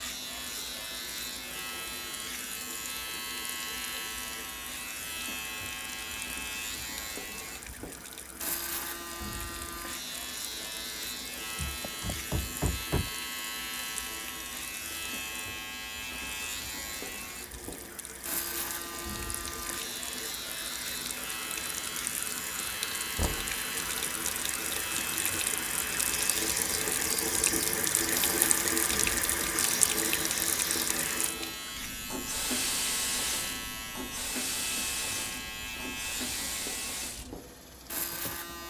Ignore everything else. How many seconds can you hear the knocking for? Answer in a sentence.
You can hear the knocking for 2 seconds altogether.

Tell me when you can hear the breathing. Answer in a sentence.
The breathing can't be heard in this clip.